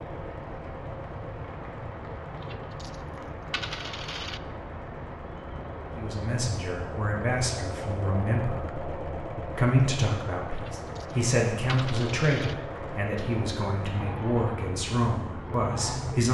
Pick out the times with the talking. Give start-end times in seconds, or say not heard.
6.0-16.2.